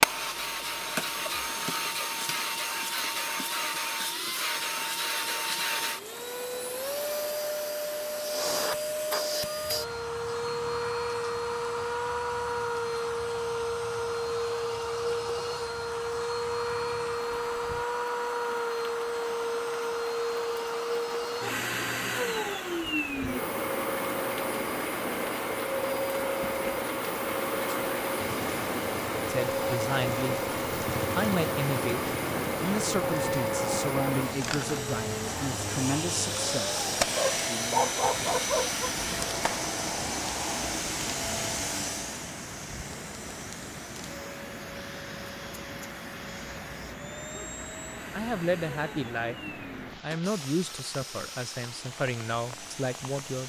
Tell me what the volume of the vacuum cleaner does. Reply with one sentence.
The volume of the vacuum cleaner goes down.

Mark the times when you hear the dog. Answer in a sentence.
You can hear the dog from 37.1 to 38.9 s.